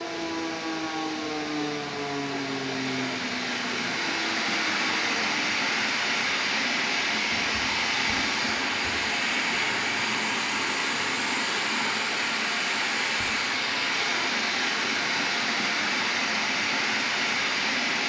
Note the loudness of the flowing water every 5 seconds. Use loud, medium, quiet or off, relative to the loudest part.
medium, loud, loud, loud.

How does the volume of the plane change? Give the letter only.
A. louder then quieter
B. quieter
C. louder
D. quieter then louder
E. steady
B.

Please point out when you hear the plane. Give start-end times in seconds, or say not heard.
0.0-5.3.